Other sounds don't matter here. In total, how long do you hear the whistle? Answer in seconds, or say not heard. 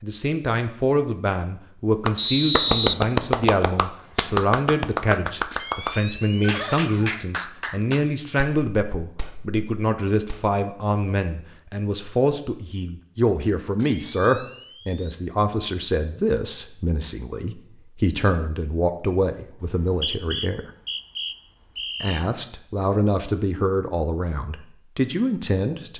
4 s.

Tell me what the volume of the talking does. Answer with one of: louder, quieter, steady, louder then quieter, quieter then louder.
steady.